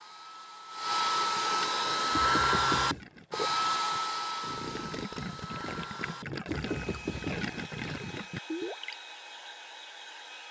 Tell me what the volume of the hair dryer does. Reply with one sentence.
The loudness of the hair dryer goes down.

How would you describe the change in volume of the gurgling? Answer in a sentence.
The volume of the gurgling goes up.